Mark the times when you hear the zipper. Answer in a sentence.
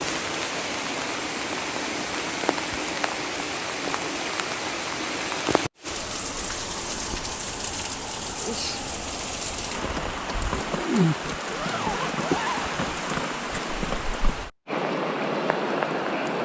The zipper can be heard from 11.3 to 12.7 s.